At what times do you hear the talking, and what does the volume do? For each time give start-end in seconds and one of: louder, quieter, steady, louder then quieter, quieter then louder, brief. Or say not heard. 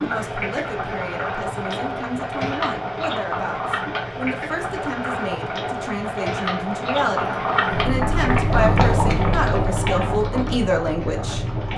0.0-11.7 louder.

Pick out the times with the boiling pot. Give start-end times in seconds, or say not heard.
0.0-11.7.